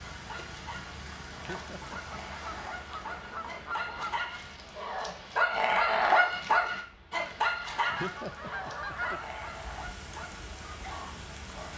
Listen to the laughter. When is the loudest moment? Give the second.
8 s.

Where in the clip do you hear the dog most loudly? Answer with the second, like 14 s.
6 s.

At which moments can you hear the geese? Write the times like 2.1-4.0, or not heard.
1.8-4.4, 7.7-9.3.